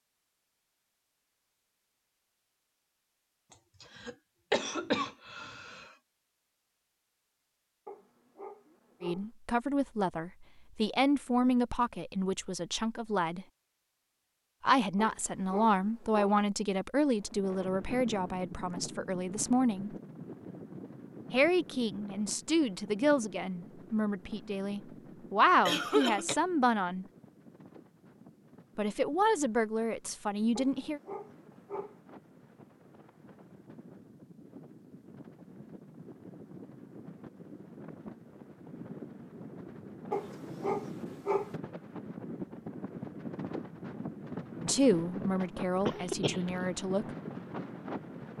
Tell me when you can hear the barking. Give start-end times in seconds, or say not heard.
7.8-9.3, 14.9-16.4, 30.6-32.0, 40.1-41.5.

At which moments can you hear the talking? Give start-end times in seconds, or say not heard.
9.0-13.4, 14.6-19.9, 21.3-27.1, 28.8-31.0, 44.6-47.0.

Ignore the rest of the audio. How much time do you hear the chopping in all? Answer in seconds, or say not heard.
not heard.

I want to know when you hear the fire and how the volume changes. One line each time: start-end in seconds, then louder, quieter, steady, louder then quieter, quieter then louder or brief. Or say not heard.
not heard.